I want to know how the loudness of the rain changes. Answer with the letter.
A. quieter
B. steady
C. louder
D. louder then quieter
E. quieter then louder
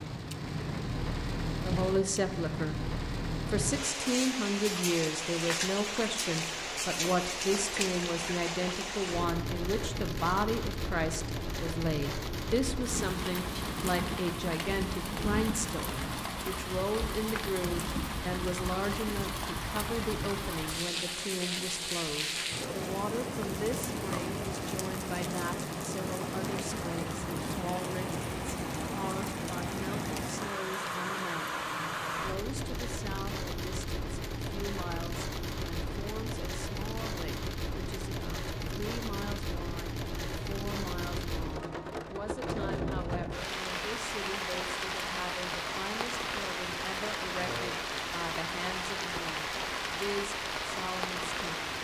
B.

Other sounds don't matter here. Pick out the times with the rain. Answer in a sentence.
The rain can be heard from 0.0 to 51.7 s.